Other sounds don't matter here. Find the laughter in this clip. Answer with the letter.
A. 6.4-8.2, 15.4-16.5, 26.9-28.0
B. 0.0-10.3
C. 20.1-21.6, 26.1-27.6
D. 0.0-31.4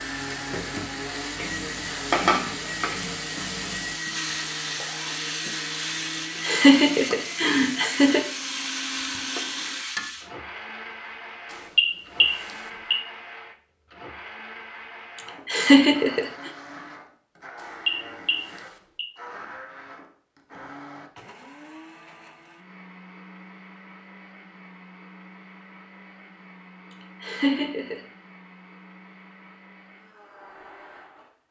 A.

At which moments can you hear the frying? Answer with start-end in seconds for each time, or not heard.
0.0-10.3.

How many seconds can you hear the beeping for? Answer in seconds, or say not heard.
3 s.